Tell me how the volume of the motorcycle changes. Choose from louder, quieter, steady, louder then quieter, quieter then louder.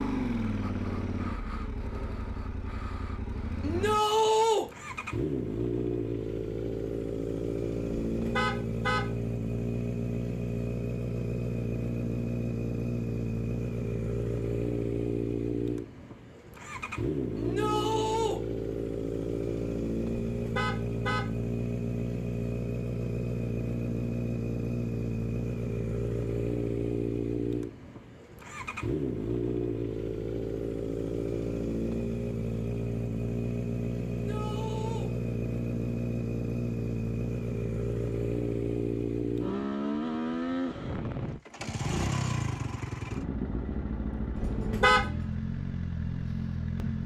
steady.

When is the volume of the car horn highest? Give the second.
45 s.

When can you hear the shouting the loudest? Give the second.
4 s.